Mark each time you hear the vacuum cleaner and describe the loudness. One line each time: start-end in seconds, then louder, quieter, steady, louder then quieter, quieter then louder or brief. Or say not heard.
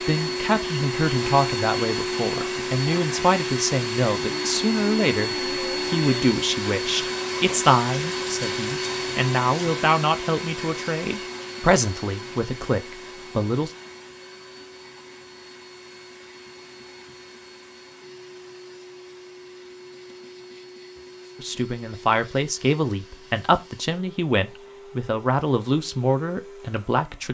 0.0-27.3 quieter.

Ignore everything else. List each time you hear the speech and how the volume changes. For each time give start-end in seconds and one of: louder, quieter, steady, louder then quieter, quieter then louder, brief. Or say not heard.
0.0-13.7 steady
21.4-27.3 steady.